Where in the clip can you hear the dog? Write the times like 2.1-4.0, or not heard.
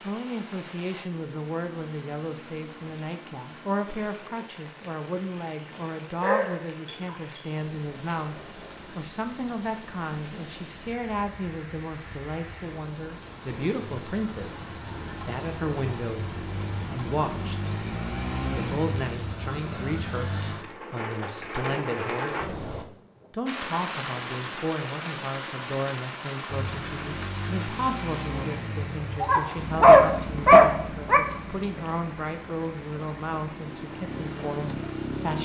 6.2-7.5, 29.2-31.2.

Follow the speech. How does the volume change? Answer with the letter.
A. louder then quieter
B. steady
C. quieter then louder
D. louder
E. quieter
B.